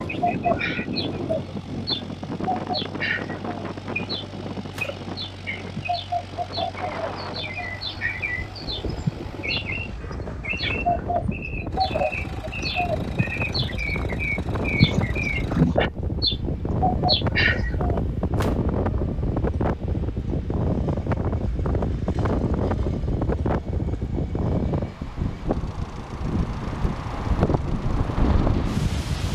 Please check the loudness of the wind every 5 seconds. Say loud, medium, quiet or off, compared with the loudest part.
medium, medium, medium, loud, loud, loud.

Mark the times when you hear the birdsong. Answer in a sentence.
The birdsong can be heard from 0.0 to 18.0 s.